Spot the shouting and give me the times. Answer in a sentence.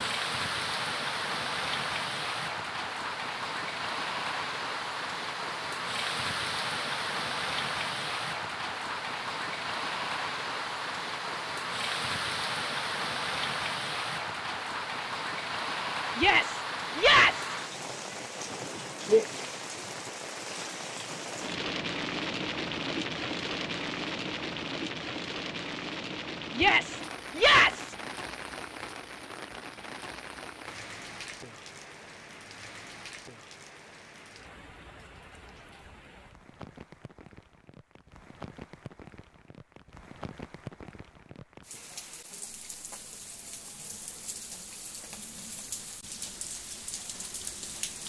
You can hear the shouting from 16.1 to 17.6 s and from 26.6 to 27.9 s.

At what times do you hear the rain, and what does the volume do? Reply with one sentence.
The rain can be heard from 0.0 to 48.0 s, getting quieter.